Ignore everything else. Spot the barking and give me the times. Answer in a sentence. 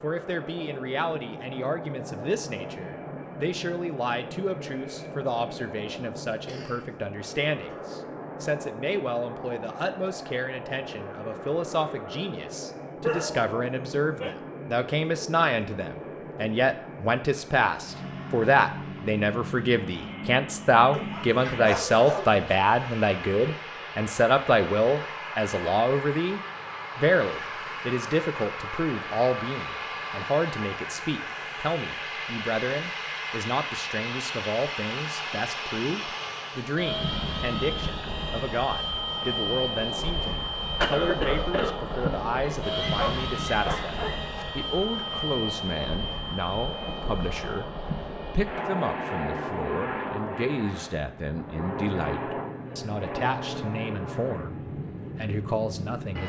The barking can be heard from 13.0 to 14.3 s, from 20.9 to 22.4 s and from 42.4 to 44.5 s.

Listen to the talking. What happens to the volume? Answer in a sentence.
The volume of the talking goes up, then down.